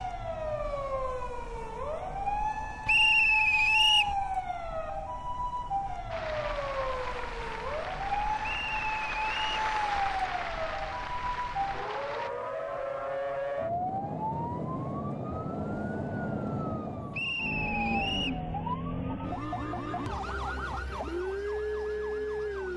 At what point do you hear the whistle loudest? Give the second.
3 s.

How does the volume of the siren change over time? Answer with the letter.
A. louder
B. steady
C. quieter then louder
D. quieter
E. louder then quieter
B.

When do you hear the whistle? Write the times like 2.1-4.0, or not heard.
2.9-4.2, 8.4-9.4, 17.1-18.4.